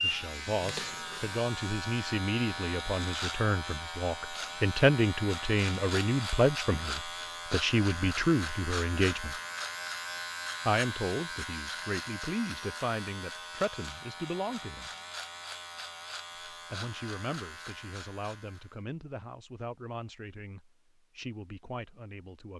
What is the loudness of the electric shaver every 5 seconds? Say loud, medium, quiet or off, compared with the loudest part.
loud, loud, loud, medium, off.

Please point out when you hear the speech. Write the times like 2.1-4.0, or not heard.
0.0-9.4, 10.7-14.9, 16.5-22.5.